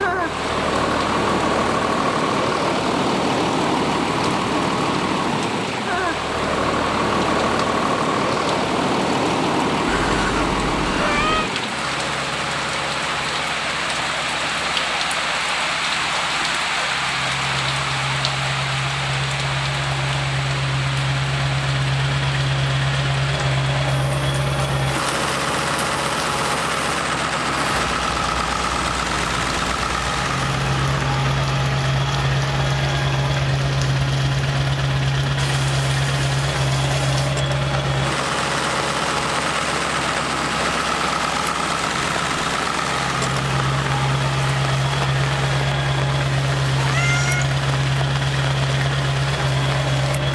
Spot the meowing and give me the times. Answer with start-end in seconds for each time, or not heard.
9.8-11.5, 46.8-47.6.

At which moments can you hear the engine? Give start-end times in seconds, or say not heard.
0.0-50.3.